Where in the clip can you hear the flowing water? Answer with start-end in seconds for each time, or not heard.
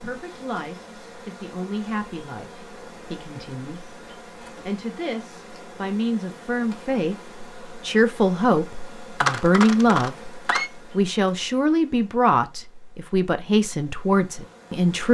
not heard.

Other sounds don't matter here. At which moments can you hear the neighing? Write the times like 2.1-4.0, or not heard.
9.2-10.7.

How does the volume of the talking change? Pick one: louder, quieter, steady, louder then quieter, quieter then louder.
louder.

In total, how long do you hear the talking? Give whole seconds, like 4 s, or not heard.
15 s.